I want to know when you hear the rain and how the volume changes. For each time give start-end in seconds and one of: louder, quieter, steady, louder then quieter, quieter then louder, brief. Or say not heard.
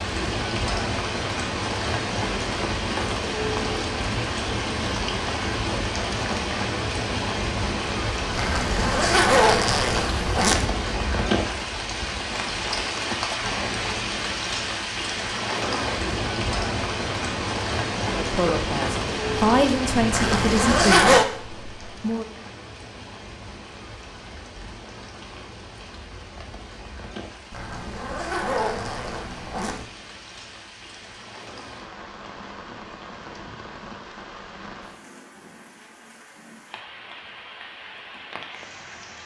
0.0-39.2 quieter.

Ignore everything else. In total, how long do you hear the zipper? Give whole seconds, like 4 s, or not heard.
6 s.